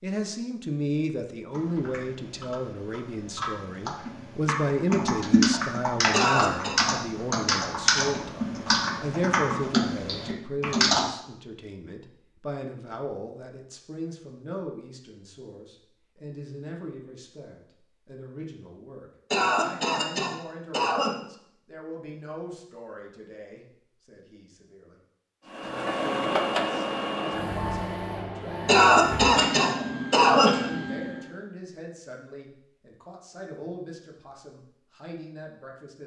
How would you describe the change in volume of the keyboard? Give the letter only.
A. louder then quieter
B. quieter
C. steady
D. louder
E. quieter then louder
D.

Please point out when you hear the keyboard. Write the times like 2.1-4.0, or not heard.
1.5-11.0.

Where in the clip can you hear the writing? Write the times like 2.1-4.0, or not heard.
not heard.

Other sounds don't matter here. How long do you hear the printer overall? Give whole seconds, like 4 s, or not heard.
6 s.